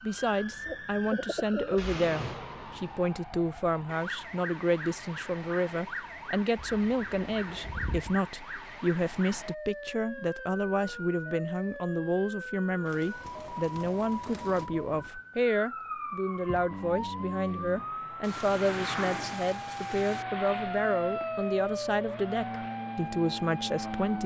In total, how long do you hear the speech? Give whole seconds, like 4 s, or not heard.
24 s.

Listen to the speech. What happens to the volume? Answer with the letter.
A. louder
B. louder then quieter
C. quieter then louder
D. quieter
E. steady
E.